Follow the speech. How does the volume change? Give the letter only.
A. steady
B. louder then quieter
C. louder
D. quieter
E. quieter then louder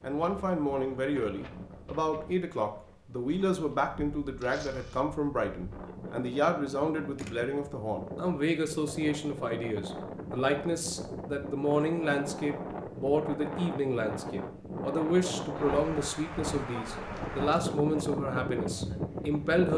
A.